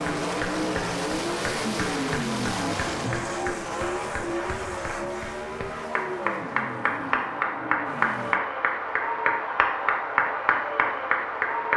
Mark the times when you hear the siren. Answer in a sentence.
You can't hear the siren here.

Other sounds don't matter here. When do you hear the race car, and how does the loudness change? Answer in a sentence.
The race car can be heard from 0.0 to 8.4 s, getting quieter.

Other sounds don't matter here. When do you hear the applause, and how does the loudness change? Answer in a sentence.
The applause can be heard from 0.0 to 11.7 s, getting louder.